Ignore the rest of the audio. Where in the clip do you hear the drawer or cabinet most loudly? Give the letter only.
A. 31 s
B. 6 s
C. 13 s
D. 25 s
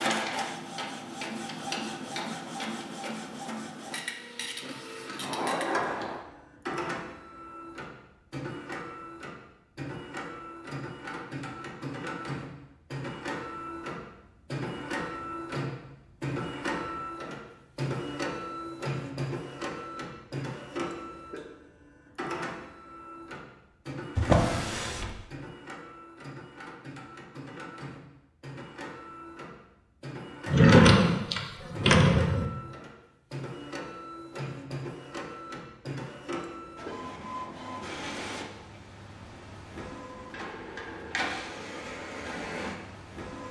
A.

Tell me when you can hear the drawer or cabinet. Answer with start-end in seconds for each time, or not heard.
5.2-6.2, 24.1-25.1, 30.4-32.5.